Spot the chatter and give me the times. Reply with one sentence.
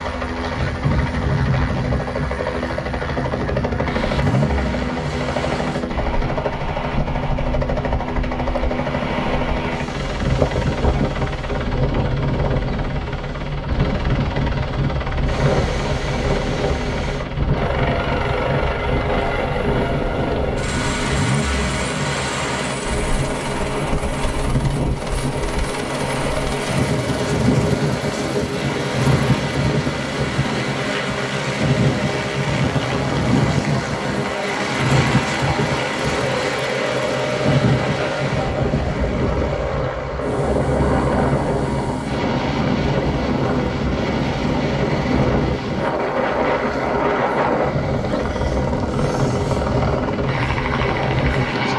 You can't hear the chatter here.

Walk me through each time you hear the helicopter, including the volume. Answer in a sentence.
You can hear the helicopter from 0.0 to 51.7 s, at a steady volume.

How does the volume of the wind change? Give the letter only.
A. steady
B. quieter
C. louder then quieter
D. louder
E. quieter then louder
A.